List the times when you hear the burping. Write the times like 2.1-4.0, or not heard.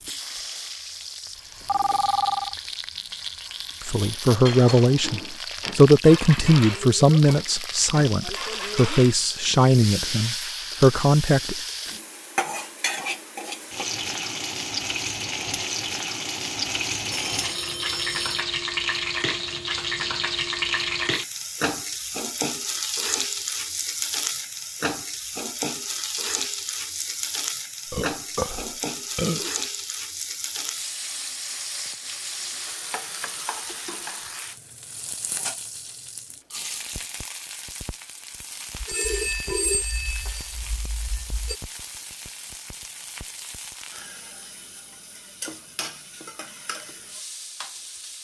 27.9-29.6.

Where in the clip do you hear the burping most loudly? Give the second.
29 s.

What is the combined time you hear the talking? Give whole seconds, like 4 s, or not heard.
8 s.